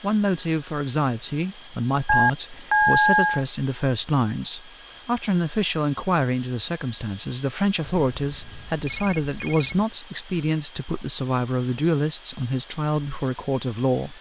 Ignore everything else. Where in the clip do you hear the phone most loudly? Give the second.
3 s.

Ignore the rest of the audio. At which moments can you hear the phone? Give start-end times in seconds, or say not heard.
2.0-3.5, 7.8-9.8.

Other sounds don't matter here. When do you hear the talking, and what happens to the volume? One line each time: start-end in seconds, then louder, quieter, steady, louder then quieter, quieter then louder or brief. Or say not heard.
0.0-14.1 steady.